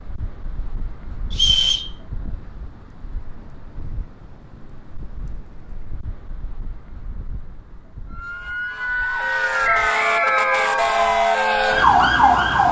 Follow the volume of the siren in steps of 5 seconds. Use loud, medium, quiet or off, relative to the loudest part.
off, medium, loud.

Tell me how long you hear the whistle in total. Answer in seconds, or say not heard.
2 s.